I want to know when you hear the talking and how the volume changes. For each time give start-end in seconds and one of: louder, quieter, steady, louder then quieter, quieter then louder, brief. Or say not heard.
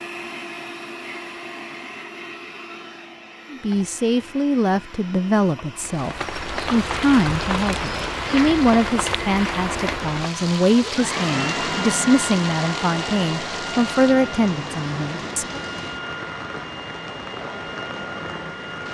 3.5-15.6 steady.